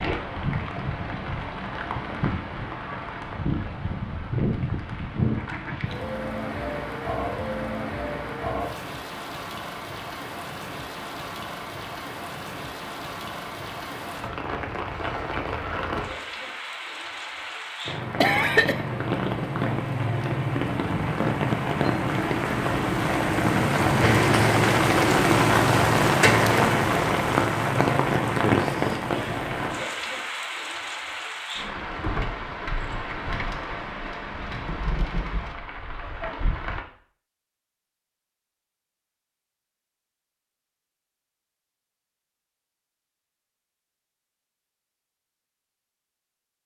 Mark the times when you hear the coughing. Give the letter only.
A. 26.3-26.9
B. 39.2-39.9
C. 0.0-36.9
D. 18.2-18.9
D.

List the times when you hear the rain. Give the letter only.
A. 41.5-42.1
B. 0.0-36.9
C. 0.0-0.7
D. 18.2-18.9
B.